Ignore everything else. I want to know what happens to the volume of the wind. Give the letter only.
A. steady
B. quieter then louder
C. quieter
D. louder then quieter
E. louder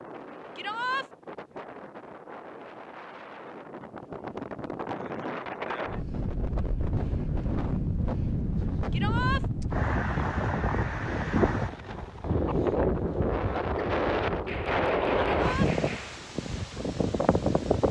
E.